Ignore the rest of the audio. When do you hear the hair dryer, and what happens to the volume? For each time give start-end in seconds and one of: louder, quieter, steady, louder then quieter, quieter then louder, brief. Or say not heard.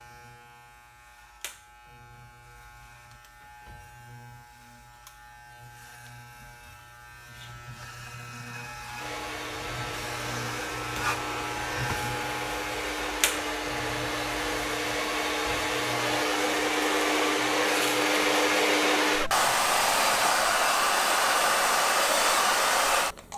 8.9-23.3 louder.